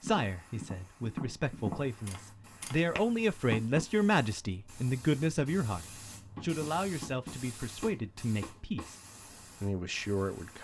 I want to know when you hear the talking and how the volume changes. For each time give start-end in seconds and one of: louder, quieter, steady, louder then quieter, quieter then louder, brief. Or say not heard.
0.0-9.0 louder then quieter
9.6-10.5 brief.